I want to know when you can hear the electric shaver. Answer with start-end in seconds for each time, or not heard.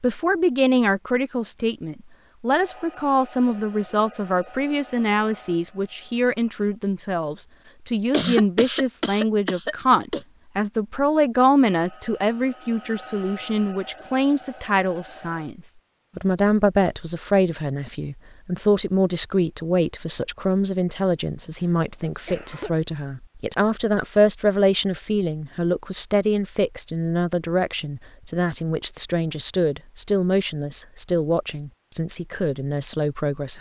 not heard.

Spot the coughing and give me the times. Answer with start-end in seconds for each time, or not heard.
8.1-10.2, 21.6-22.8.